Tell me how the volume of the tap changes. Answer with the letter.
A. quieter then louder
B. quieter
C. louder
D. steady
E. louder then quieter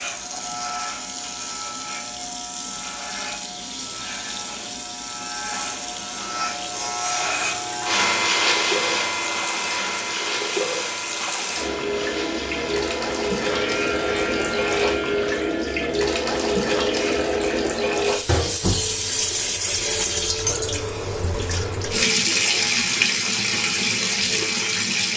C.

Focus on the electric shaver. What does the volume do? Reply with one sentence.
The volume of the electric shaver goes up, then down.